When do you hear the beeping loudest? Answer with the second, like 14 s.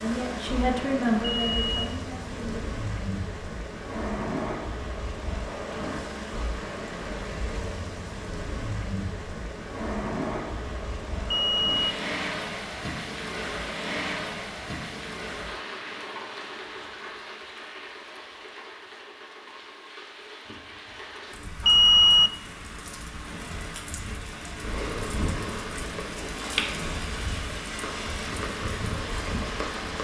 22 s.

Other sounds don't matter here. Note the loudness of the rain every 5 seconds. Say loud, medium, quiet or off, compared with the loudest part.
loud, loud, loud, medium, medium, loud.